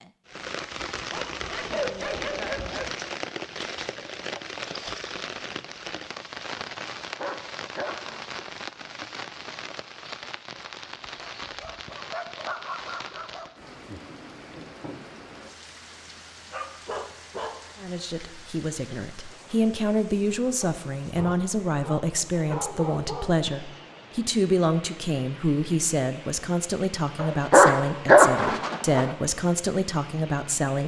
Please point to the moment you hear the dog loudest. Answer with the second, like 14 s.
28 s.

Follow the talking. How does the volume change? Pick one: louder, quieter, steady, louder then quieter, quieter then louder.
steady.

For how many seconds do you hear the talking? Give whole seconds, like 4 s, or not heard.
13 s.